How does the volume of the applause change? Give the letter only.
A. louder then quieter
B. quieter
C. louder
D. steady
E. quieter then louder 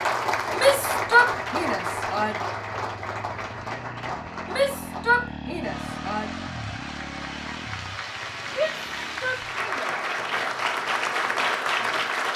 E.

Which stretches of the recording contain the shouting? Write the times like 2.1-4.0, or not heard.
0.6-2.4, 4.5-6.3, 8.6-9.9.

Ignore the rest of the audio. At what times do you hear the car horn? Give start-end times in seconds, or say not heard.
not heard.